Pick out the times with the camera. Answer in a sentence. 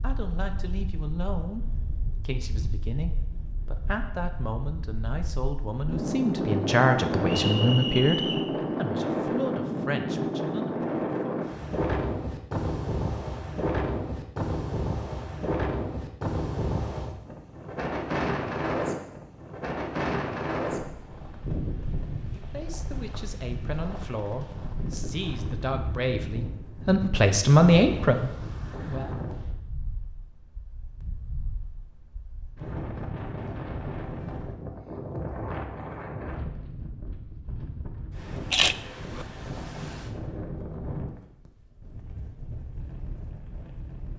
The camera can be heard from 38.5 to 39.2 s.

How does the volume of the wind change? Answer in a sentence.
The volume of the wind goes down.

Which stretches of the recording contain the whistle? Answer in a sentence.
The whistle can be heard from 7.3 to 8.4 s.